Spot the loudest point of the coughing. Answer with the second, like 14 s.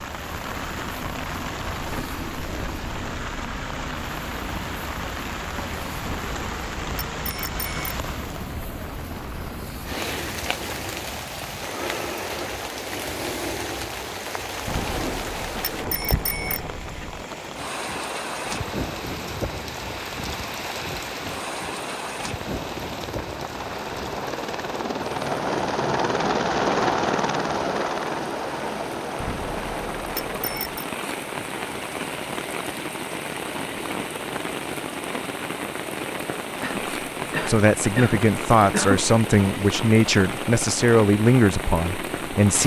39 s.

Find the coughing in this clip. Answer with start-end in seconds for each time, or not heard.
36.6-39.1.